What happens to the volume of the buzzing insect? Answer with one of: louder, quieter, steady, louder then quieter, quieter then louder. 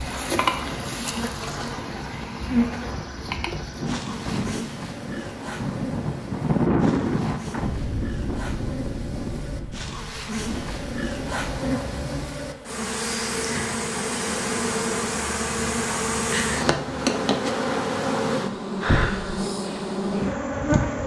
quieter then louder.